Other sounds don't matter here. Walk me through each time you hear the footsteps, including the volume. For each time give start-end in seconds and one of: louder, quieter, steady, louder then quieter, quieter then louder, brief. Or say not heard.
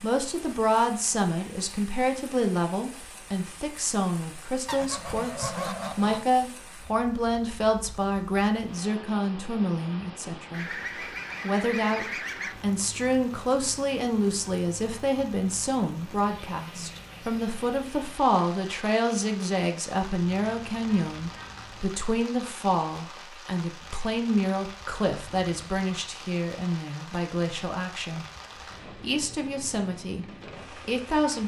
not heard.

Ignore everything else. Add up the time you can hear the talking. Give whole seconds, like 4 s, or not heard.
29 s.